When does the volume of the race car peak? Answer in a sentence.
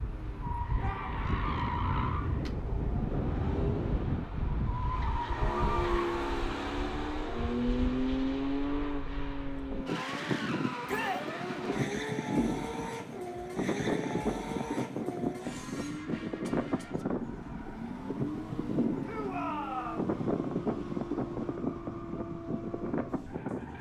The loudest moment of the race car is at 8 seconds.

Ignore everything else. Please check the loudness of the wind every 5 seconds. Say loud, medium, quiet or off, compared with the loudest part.
loud, medium, loud, loud, loud.